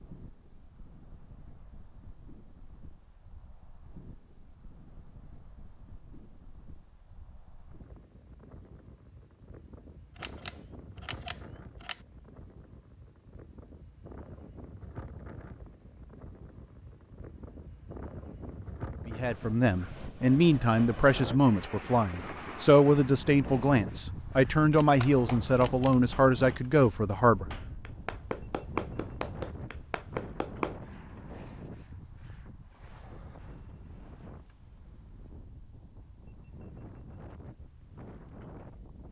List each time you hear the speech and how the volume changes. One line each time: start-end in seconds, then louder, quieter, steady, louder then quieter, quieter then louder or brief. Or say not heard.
19.1-27.4 steady.